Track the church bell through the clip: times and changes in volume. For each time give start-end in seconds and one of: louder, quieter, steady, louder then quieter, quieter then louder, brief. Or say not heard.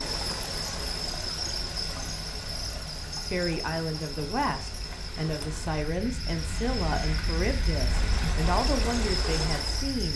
not heard.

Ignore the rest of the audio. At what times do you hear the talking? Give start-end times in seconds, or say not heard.
3.3-10.1.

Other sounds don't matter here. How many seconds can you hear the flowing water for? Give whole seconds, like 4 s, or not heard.
10 s.